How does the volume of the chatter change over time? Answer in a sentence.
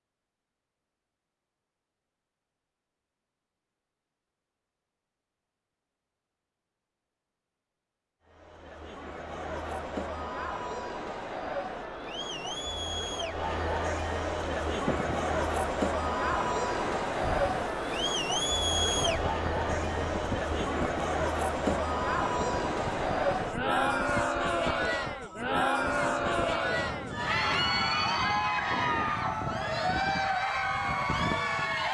The volume of the chatter goes up.